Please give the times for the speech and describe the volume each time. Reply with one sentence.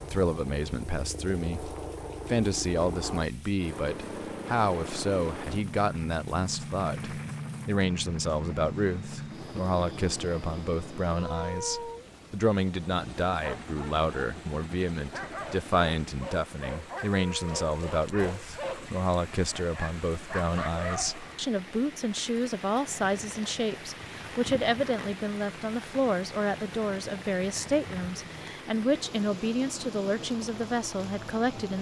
The speech can be heard from 0.0 to 31.7 s, at a steady volume.